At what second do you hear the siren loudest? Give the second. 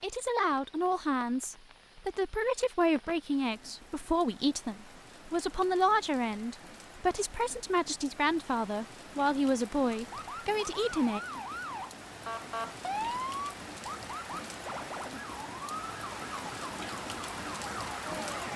13 s.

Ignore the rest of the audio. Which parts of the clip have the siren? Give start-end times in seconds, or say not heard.
9.9-18.5.